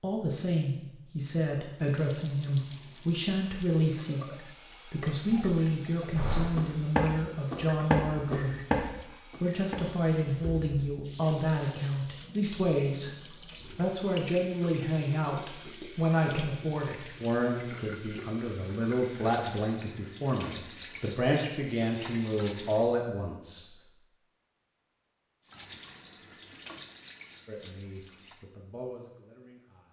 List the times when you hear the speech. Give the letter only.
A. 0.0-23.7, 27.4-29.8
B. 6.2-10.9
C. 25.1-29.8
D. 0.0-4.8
A.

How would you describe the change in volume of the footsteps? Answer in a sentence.
The volume of the footsteps goes down.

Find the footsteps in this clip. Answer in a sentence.
The footsteps can be heard from 6.2 to 10.9 s.